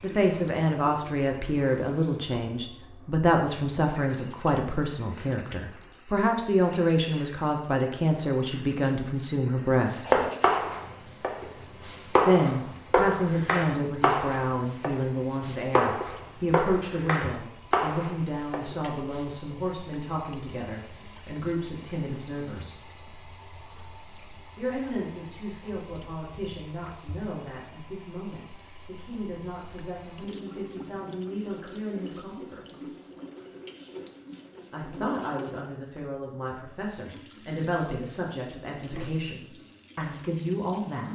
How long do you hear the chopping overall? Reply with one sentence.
You can hear the chopping for 9 seconds altogether.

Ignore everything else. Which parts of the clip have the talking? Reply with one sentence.
The talking can be heard from 0.0 to 10.2 s, from 12.2 to 22.8 s, from 24.6 to 32.8 s and from 34.7 to 41.1 s.